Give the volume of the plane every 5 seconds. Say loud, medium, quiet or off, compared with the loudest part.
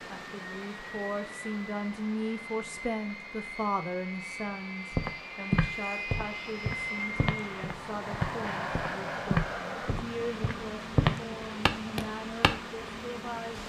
medium, loud, medium.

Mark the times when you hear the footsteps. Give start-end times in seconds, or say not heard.
5.0-12.5.